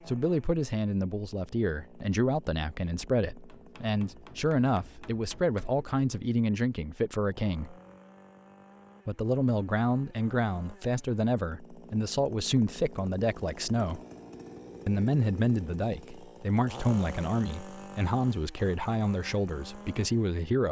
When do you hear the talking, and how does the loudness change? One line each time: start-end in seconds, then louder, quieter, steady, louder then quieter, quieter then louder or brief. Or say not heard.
0.1-7.8 steady
9.1-14.0 steady
14.8-20.6 steady.